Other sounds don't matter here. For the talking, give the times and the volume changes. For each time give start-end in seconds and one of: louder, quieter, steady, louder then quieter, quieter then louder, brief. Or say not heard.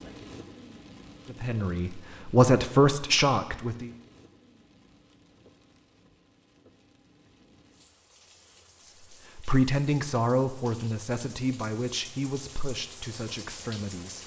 1.3-3.9 brief
9.3-14.2 quieter.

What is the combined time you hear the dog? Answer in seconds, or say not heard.
not heard.